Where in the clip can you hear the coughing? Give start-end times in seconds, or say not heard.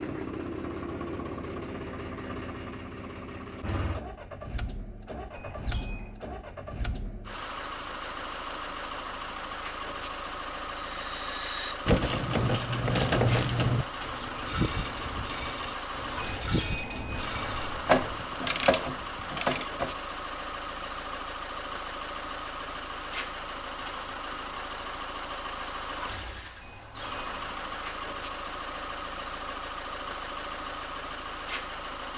not heard.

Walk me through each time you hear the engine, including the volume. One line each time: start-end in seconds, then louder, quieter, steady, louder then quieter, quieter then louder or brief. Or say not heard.
0.0-32.1 steady.